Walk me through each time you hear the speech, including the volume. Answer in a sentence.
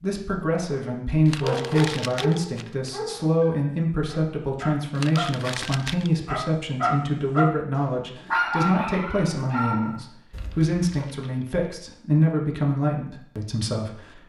The speech can be heard from 0.0 to 14.2 s, at a steady volume.